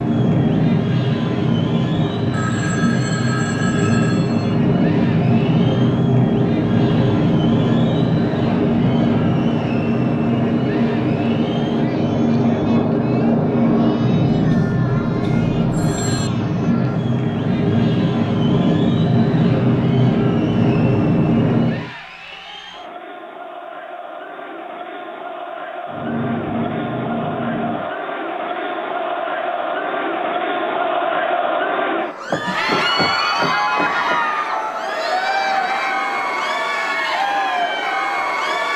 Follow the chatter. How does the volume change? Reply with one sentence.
The volume of the chatter goes up.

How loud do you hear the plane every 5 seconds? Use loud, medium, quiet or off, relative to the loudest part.
loud, loud, loud, loud, loud, medium, quiet, quiet.